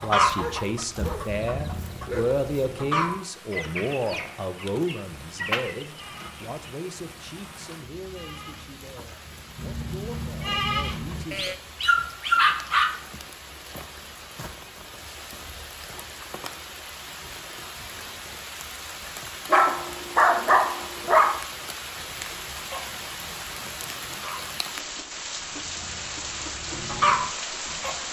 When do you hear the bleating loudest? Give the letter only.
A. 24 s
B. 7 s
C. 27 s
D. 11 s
D.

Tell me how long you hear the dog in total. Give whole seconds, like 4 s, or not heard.
6 s.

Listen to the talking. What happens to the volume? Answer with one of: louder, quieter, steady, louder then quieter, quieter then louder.
quieter.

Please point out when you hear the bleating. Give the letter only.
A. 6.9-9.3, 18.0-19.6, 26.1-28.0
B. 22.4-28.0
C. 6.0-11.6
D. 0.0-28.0
C.